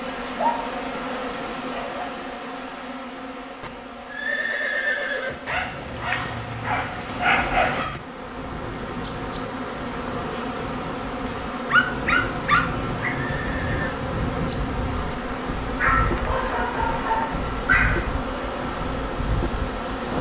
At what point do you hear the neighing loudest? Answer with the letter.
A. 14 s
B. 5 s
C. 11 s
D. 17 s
B.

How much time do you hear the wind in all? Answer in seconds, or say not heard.
13 s.